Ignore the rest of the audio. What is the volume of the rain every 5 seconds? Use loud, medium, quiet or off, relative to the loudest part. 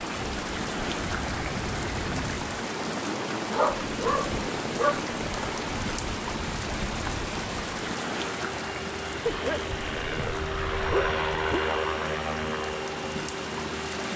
loud, loud, medium.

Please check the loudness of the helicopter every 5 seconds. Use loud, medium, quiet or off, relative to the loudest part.
medium, medium, loud.